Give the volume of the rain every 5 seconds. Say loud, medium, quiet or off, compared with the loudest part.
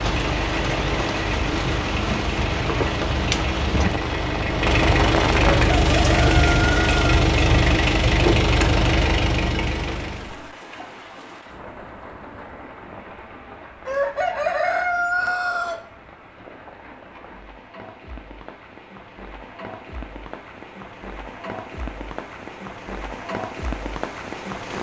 loud, loud, quiet, quiet, medium.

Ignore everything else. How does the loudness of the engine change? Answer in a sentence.
The volume of the engine goes up.